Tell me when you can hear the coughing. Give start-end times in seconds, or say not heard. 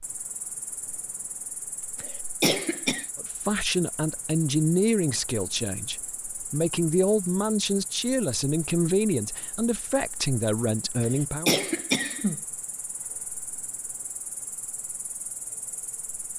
2.0-3.0, 11.0-12.4.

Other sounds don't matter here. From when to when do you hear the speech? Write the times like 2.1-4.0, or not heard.
3.1-11.6.